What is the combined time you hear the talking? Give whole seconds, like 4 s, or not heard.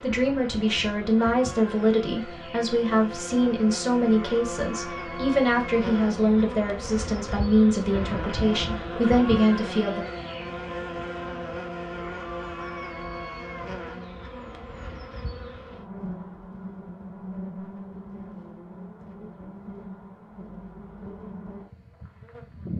10 s.